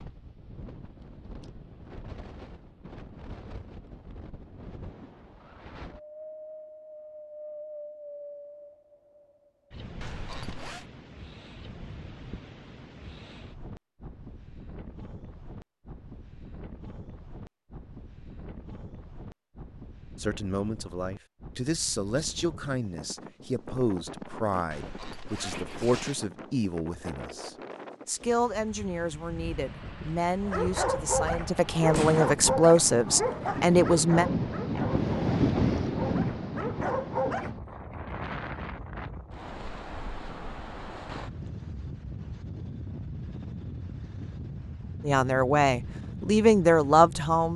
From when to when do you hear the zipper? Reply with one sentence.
You can hear the zipper from 10.0 to 10.8 s and from 24.7 to 26.2 s.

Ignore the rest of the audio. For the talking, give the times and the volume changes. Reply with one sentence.
You can hear the talking from 20.2 to 34.2 s, getting louder; and briefly from 45.0 to 47.5 s.